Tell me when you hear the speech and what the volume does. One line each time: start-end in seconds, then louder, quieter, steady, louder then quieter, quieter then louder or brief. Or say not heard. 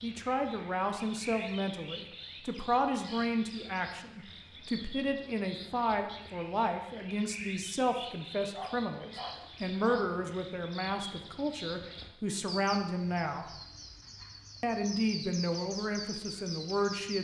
0.0-13.5 steady
14.6-17.1 brief.